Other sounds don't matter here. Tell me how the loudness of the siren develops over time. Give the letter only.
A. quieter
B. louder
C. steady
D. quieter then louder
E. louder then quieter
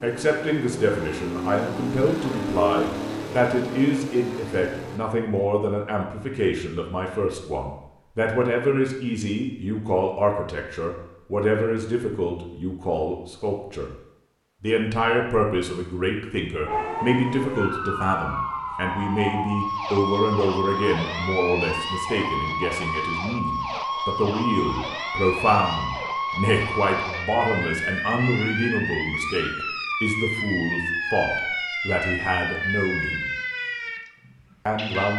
C.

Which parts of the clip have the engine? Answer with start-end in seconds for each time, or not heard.
0.0-5.0.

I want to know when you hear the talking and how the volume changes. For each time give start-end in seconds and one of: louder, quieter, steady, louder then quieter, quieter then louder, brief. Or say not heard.
0.0-13.9 steady
14.6-33.3 steady
34.6-35.1 brief.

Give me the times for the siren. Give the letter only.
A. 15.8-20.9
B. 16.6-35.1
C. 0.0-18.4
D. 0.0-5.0
B.